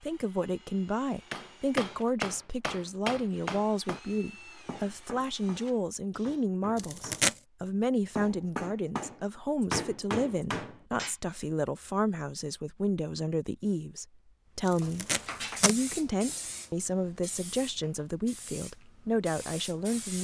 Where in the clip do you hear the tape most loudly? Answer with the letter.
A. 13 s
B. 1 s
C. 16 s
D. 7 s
D.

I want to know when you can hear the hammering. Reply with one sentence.
The hammering can be heard from 1.3 to 11.2 s.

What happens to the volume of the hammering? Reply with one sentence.
The volume of the hammering goes down, then up.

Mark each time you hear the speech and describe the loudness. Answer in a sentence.
The speech can be heard from 0.0 to 20.1 s, at a steady volume.